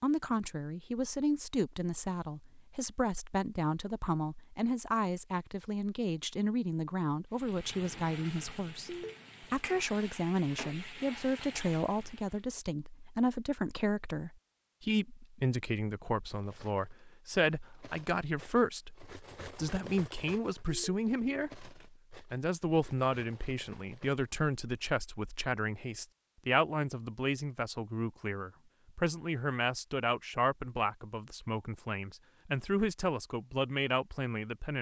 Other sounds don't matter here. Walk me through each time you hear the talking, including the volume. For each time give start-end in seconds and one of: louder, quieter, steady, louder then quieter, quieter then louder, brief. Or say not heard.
0.0-34.7 steady.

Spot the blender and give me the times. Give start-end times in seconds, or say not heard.
not heard.